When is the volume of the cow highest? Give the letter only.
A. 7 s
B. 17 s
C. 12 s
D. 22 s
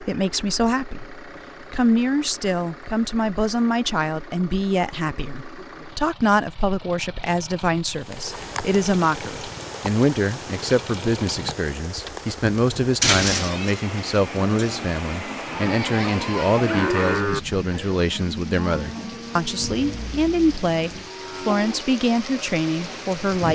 B.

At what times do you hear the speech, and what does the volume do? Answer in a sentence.
The speech can be heard from 0.0 to 23.4 s, at a steady volume.